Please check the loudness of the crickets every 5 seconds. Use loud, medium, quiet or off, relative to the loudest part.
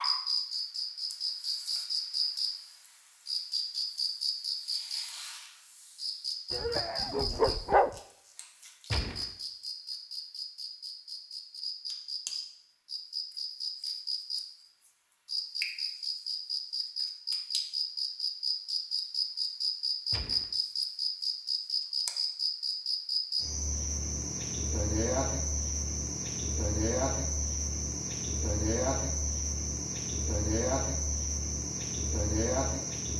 loud, medium, medium, loud, loud, loud, loud.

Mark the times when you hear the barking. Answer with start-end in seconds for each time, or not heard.
6.5-8.0.